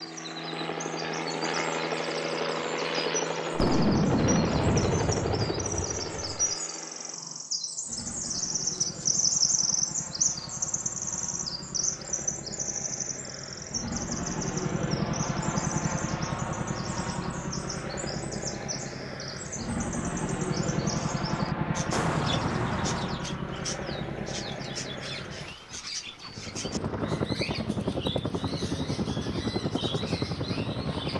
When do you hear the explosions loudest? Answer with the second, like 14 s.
4 s.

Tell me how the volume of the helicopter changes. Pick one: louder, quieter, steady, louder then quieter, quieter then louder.
quieter then louder.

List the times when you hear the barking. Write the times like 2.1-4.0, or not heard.
not heard.